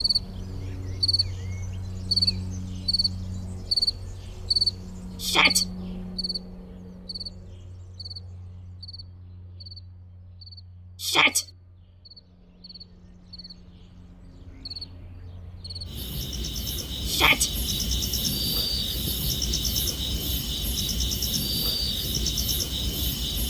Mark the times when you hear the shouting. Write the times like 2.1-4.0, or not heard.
5.2-5.7, 11.0-11.4, 17.1-17.5.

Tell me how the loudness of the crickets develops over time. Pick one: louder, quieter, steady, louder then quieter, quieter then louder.
quieter then louder.